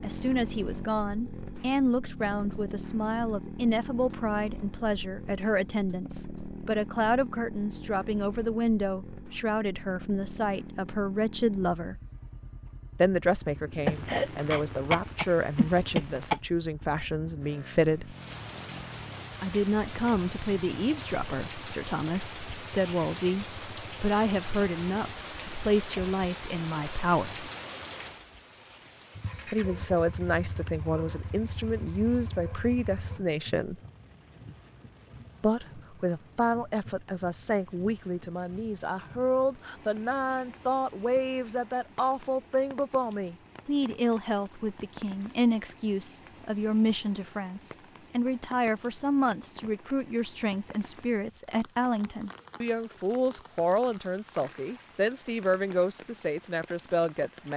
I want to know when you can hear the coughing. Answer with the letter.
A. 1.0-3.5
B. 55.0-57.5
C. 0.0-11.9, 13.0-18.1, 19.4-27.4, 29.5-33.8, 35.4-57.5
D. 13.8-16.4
D.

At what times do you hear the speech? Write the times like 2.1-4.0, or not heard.
0.0-11.9, 13.0-18.1, 19.4-27.4, 29.5-33.8, 35.4-57.5.